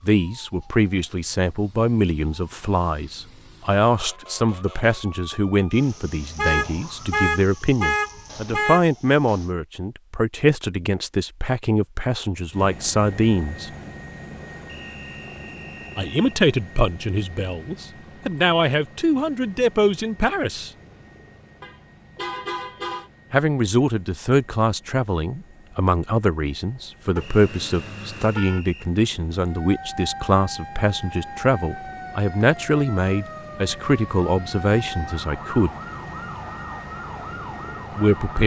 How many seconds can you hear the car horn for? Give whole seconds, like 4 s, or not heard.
6 s.